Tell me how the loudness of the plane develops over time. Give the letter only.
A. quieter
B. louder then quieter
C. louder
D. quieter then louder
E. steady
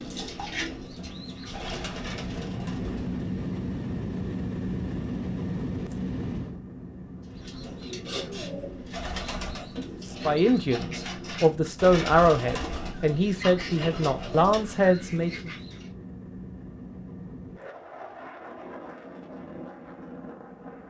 A.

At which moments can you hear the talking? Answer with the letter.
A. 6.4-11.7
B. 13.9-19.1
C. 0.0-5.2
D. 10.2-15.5
D.